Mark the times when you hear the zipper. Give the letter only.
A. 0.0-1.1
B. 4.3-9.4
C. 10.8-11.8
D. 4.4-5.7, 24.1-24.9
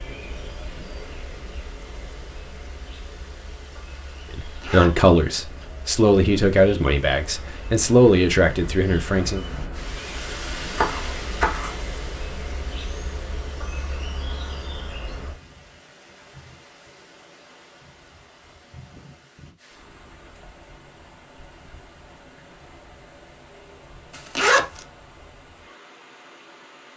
D.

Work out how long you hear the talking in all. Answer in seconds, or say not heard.
5 s.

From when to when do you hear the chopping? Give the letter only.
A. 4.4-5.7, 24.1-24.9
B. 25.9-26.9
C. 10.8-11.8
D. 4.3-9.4
C.